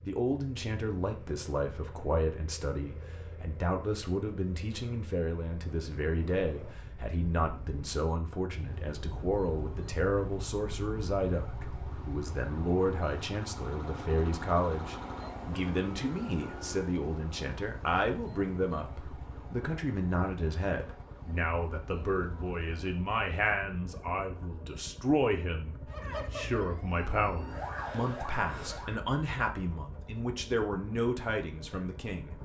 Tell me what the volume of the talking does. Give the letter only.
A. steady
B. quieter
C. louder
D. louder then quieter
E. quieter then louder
A.